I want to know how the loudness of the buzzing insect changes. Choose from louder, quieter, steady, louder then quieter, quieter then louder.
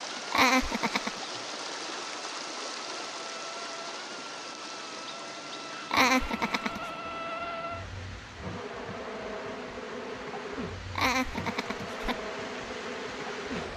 louder.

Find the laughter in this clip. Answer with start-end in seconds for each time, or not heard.
0.3-1.2, 5.9-6.8, 10.9-12.2.